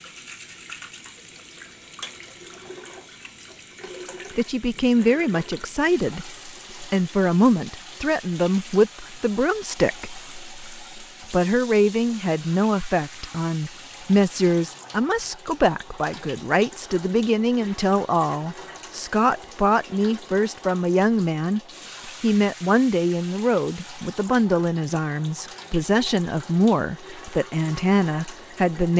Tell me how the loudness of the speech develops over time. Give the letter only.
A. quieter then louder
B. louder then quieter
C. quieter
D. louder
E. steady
E.